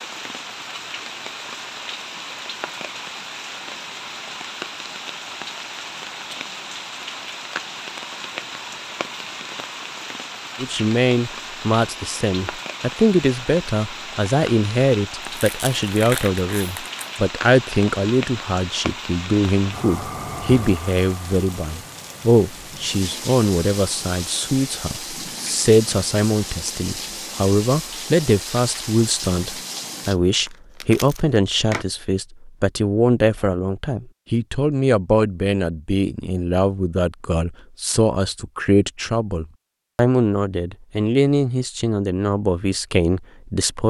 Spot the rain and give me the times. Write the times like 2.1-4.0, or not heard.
0.0-30.1.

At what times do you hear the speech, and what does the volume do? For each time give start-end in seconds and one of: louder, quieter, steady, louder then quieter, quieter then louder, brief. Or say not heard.
10.6-43.8 steady.